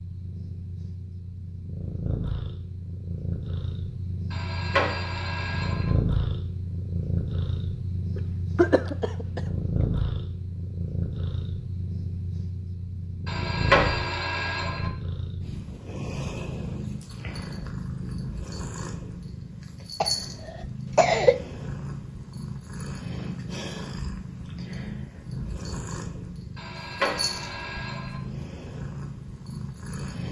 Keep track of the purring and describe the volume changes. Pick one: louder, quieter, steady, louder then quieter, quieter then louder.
steady.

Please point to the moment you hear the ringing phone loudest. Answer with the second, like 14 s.
14 s.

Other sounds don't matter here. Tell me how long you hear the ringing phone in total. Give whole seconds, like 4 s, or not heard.
5 s.